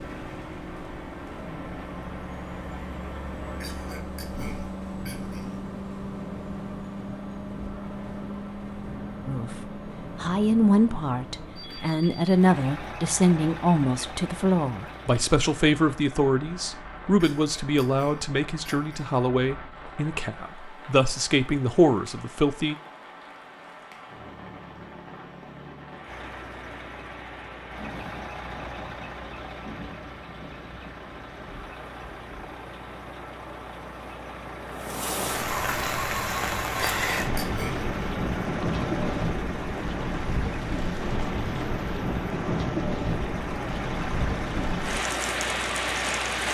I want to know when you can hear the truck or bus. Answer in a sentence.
The truck or bus can be heard from 0.0 to 16.0 s and from 26.1 to 46.5 s.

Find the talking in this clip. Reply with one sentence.
The talking can be heard from 9.2 to 22.8 s.